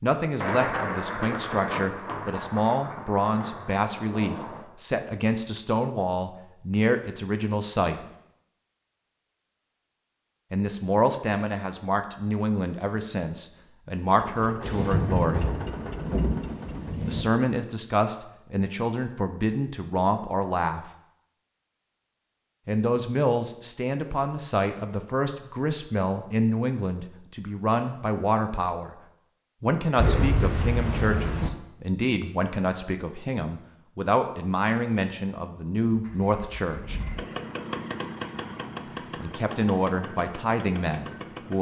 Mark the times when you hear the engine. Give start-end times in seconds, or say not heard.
14.1-17.1, 35.9-41.5.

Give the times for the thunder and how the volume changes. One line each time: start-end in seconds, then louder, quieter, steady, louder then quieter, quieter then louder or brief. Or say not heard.
0.4-4.7 quieter
14.6-17.2 brief
29.9-31.5 brief.